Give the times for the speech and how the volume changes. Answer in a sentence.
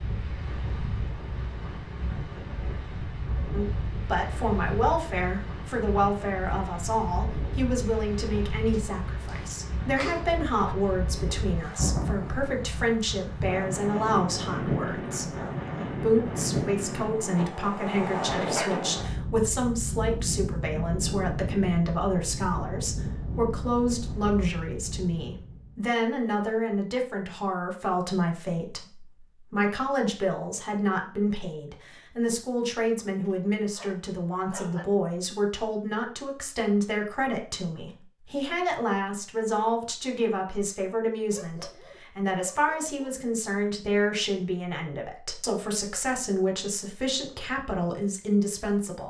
The speech can be heard from 3.5 to 49.0 s, at a steady volume.